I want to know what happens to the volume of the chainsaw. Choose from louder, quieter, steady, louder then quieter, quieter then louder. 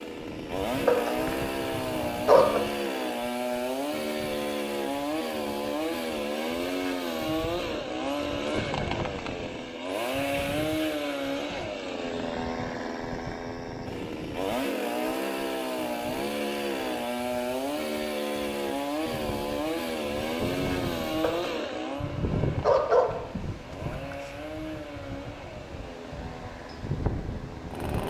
quieter.